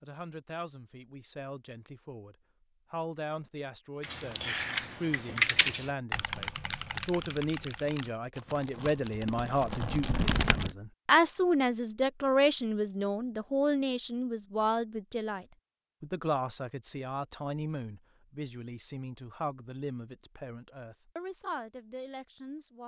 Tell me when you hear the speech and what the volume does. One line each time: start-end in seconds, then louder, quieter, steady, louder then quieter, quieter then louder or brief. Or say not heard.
0.0-22.8 louder then quieter.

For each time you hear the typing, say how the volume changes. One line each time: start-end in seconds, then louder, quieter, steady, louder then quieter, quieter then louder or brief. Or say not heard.
4.0-10.8 quieter then louder.